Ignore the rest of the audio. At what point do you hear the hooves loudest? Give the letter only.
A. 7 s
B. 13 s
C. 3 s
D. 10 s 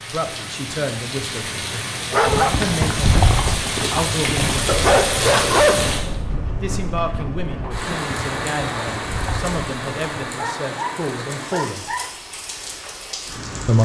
C.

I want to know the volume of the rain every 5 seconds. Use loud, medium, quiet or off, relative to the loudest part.
loud, loud, medium.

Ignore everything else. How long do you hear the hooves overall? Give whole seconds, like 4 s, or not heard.
8 s.